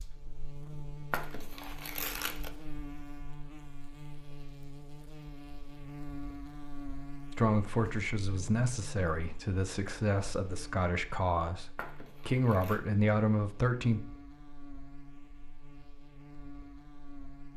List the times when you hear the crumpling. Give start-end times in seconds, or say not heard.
1.1-2.5, 11.8-12.8.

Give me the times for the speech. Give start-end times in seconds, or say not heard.
7.3-14.0.